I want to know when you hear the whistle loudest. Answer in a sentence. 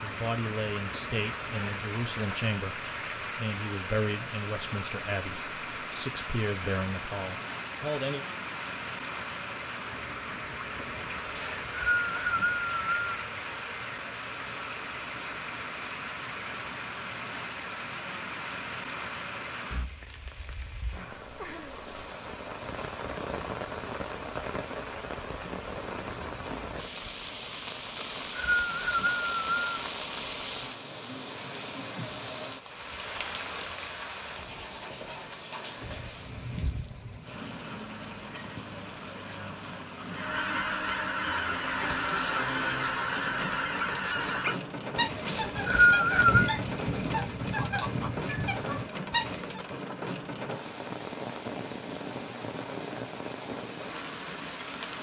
The volume of the whistle peaks at 46 seconds.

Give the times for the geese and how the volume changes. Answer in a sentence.
You can hear the geese from 40.1 to 49.6 s, at a steady volume.